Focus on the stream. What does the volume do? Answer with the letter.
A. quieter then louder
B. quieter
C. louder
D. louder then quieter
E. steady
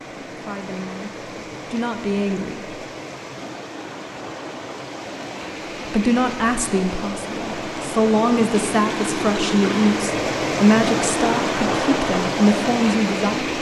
C.